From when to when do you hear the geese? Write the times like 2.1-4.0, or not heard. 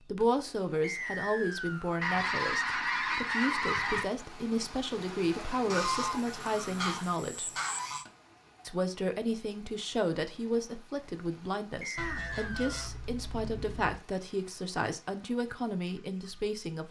2.0-4.0, 5.7-8.1, 11.9-14.0.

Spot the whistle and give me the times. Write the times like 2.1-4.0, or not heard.
0.8-1.9, 11.8-12.9.